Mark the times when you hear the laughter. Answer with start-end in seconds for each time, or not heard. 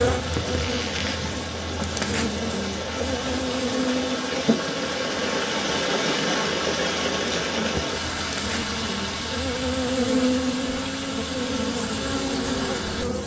not heard.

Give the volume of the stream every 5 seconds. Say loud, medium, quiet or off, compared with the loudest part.
loud, loud, medium.